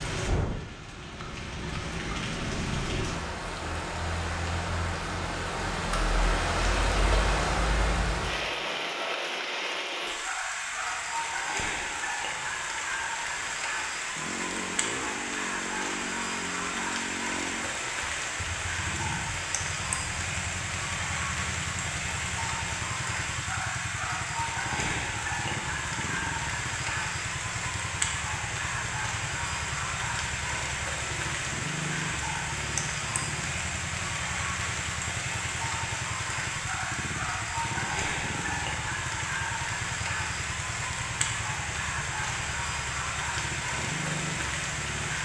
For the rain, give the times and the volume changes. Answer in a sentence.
You can hear the rain from 0.0 to 45.1 s, at a steady volume.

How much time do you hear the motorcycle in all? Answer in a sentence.
You can hear the motorcycle for 31 seconds altogether.